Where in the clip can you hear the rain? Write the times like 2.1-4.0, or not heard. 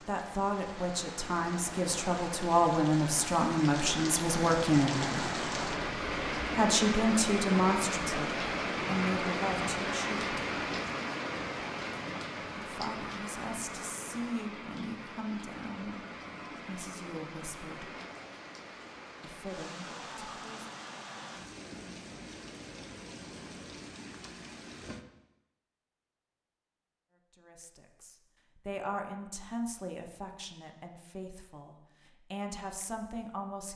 0.0-25.1.